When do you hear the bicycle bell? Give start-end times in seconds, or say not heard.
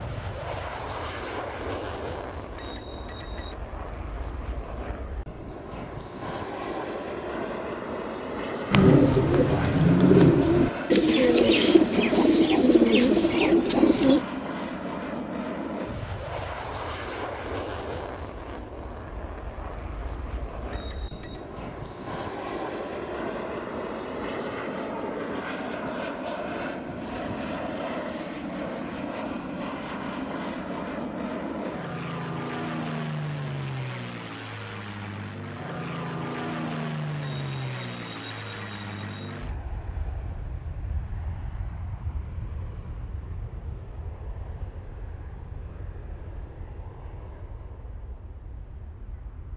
2.5-3.6, 20.7-21.4, 37.2-39.2.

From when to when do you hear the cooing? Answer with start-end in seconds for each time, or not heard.
8.7-14.2.